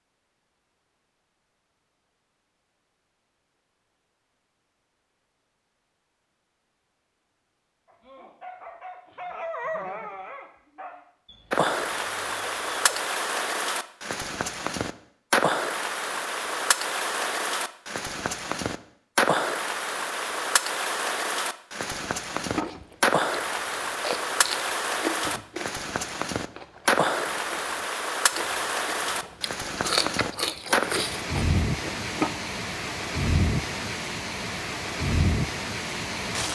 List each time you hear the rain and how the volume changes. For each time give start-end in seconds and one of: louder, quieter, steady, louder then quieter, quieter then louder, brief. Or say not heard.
11.5-36.5 steady.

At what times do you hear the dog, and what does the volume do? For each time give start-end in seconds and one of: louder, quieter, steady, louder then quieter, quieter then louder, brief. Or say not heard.
7.8-13.0 louder then quieter.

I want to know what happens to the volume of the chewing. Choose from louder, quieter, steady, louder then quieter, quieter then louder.
quieter then louder.